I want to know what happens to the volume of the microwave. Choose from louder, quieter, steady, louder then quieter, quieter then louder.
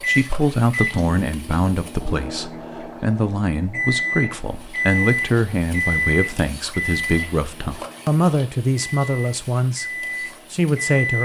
louder then quieter.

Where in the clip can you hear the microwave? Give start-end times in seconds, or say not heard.
0.0-11.1.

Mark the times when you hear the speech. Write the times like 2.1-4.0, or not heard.
0.1-9.8, 10.5-11.1.